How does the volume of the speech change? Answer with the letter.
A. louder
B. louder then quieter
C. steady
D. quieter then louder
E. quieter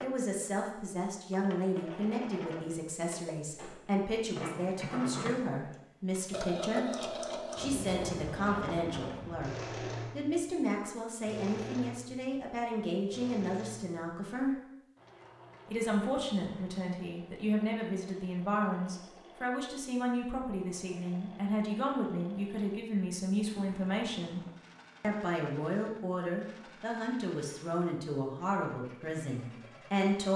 C.